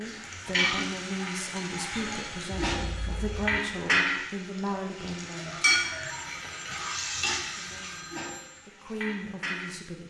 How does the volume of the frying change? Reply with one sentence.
The loudness of the frying goes down.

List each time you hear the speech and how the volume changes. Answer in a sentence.
You can hear the speech from 0.0 to 5.8 s, at a steady volume; and briefly from 7.5 to 10.0 s.